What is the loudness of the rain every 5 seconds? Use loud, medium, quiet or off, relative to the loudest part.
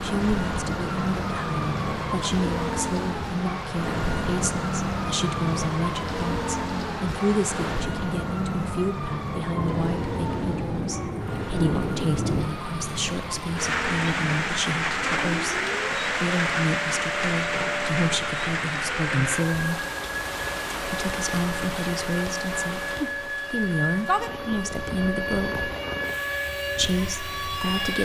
medium, medium, loud, loud, medium, medium.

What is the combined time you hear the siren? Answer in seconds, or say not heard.
28 s.